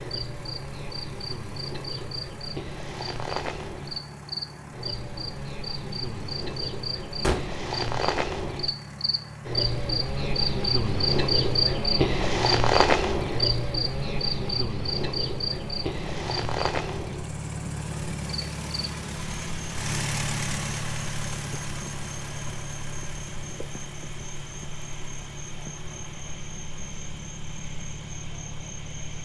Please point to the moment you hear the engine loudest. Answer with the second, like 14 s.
20 s.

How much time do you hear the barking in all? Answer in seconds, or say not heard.
not heard.